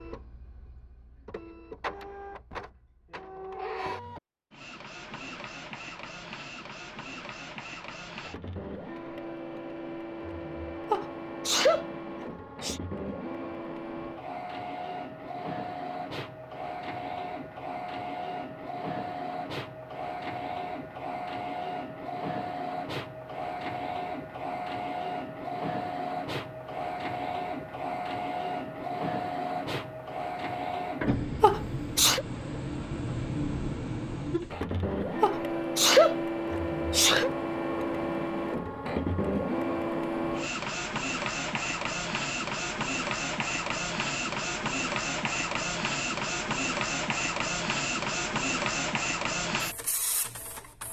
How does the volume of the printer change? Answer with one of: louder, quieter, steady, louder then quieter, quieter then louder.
louder.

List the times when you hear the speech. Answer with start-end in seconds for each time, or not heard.
not heard.